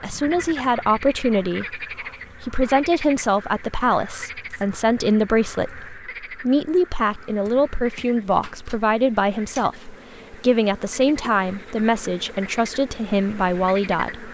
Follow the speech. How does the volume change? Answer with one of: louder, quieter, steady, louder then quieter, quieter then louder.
steady.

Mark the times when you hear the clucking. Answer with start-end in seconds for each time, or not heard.
not heard.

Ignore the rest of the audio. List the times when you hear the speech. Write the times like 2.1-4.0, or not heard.
0.0-14.2.